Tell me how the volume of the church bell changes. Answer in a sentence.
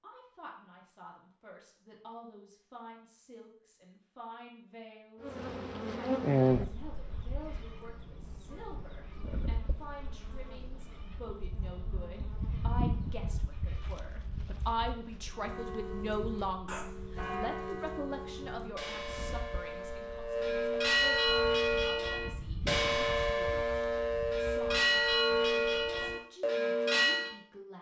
The volume of the church bell goes up.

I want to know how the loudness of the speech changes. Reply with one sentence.
The volume of the speech goes up, then down.